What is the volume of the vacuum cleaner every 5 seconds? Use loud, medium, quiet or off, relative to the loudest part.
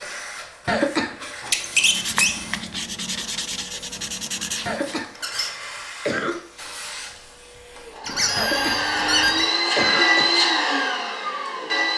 quiet, medium, loud.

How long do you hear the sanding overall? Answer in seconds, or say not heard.
3 s.